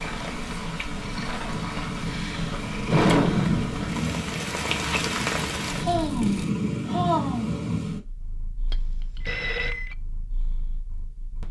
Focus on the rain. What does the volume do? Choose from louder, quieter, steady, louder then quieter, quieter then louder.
louder.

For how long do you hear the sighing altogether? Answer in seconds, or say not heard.
4 s.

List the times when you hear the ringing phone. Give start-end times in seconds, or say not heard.
8.7-9.9.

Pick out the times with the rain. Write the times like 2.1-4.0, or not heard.
0.0-6.5.